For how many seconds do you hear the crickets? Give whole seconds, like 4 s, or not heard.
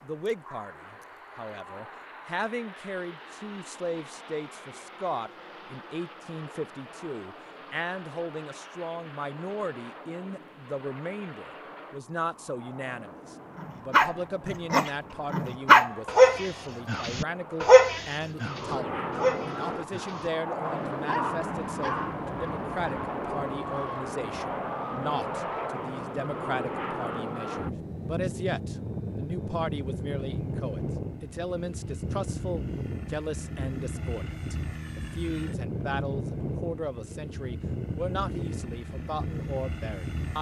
not heard.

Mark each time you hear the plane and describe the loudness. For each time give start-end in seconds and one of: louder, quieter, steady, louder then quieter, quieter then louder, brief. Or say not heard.
0.0-40.3 louder.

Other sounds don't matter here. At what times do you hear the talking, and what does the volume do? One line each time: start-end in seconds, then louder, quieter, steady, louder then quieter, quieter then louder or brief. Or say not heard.
0.0-40.3 steady.